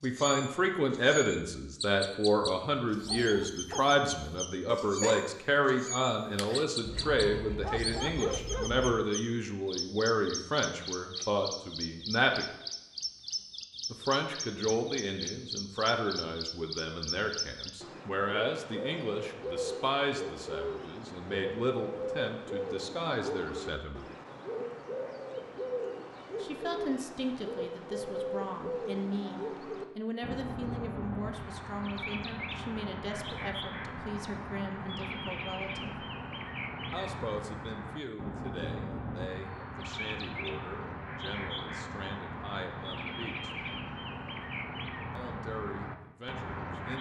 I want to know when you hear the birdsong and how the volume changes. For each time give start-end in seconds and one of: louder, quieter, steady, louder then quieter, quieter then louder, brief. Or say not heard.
0.0-46.9 steady.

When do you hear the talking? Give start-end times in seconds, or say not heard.
0.0-12.4, 13.9-24.1, 26.4-36.0, 36.9-43.5, 45.1-46.9.